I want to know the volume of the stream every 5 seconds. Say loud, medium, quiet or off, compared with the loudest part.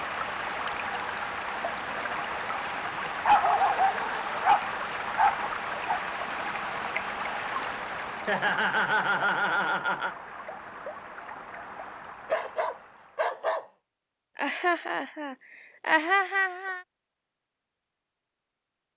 loud, loud, medium, off.